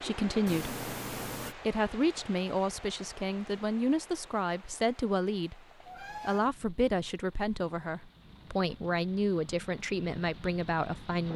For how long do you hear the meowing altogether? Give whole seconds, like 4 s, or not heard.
2 s.